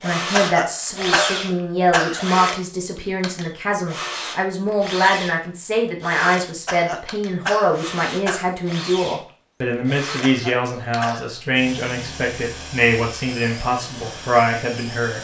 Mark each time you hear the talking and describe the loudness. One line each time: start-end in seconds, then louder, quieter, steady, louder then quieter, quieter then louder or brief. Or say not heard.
0.0-15.1 steady.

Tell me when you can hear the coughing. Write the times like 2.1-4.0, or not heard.
0.3-2.2, 6.7-8.4, 10.2-11.4.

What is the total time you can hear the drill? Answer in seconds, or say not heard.
15 s.